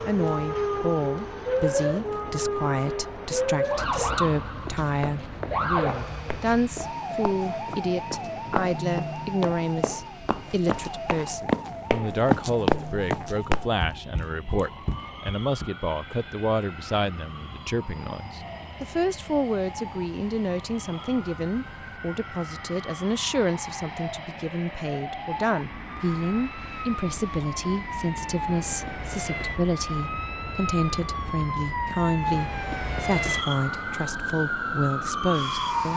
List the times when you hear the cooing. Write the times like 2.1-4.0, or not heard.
not heard.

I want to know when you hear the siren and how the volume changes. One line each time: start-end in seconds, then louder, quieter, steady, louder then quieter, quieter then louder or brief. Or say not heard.
0.0-35.9 quieter then louder.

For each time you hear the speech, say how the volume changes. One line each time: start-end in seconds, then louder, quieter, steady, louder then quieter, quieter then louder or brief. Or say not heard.
0.1-35.9 steady.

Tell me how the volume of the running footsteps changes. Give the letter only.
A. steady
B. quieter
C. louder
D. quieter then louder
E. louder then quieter
E.